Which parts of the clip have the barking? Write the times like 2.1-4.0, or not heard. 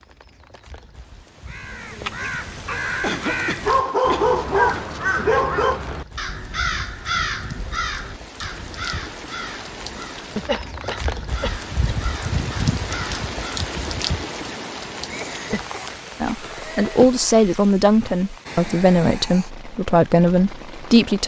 3.6-5.8.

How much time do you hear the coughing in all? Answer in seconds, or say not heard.
6 s.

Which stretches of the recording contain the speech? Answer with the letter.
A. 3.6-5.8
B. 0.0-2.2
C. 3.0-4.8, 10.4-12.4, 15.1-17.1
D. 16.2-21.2
D.